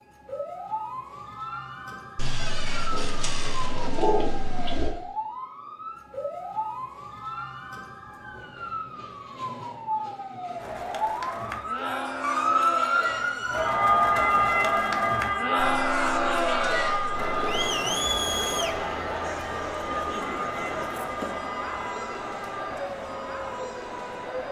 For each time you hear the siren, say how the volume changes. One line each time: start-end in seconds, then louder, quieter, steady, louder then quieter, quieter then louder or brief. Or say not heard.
0.0-24.4 louder then quieter.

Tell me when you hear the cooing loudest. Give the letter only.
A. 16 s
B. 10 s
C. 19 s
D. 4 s
D.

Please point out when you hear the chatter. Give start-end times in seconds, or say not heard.
10.6-24.4.